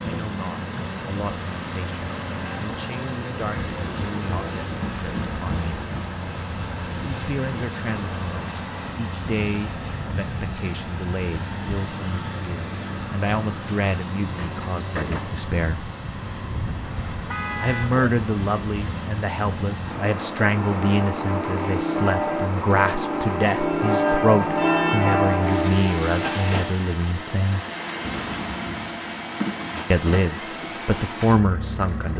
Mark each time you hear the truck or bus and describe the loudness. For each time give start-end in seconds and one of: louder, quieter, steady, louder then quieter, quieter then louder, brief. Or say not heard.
0.0-32.1 steady.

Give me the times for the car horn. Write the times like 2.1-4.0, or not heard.
16.9-18.1.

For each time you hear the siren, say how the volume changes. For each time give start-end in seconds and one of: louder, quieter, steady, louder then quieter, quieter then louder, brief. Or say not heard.
not heard.